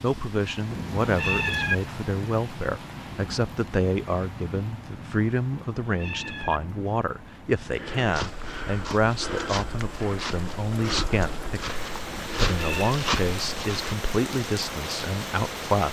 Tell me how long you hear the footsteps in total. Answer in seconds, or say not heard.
6 s.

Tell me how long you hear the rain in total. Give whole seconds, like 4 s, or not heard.
16 s.